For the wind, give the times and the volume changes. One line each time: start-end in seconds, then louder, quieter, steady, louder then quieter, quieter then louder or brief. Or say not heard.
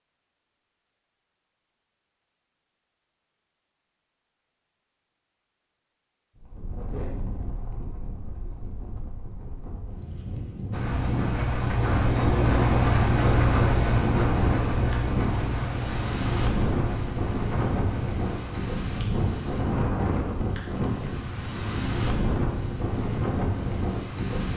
6.3-24.5 louder.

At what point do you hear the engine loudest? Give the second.
13 s.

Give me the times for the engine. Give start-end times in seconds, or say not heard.
10.7-18.7.